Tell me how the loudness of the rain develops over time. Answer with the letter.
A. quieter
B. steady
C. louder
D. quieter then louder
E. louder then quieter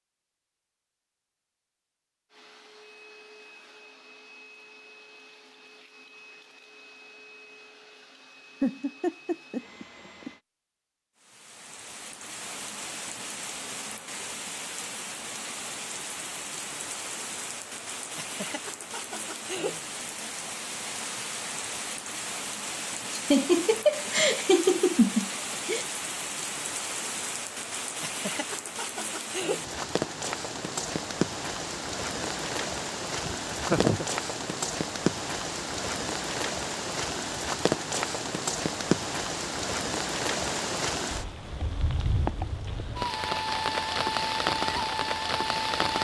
C.